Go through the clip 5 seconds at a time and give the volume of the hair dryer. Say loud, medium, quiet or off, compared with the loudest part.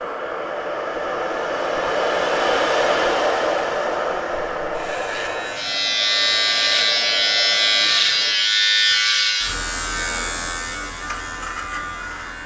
loud, medium, off.